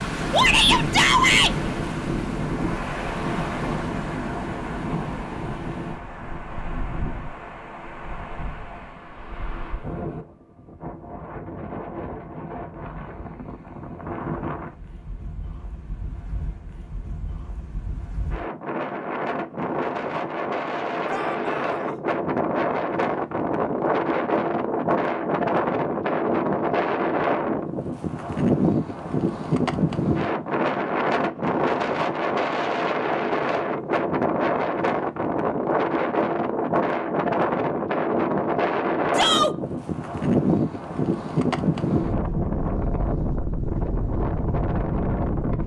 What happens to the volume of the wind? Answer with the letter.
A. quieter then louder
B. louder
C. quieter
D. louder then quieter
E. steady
A.